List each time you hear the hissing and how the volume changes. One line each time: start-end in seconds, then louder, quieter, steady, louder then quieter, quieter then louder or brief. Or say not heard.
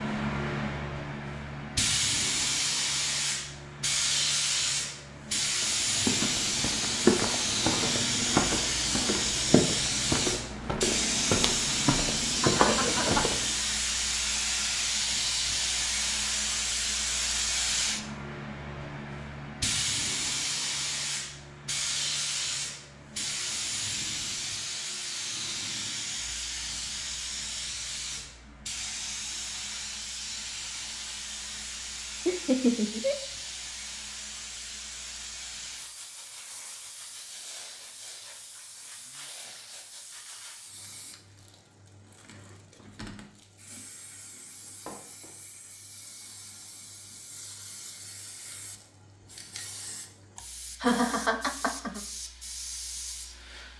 0.0-53.7 quieter.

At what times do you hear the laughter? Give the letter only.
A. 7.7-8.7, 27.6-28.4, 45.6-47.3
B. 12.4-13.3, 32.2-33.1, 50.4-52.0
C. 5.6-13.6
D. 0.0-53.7
B.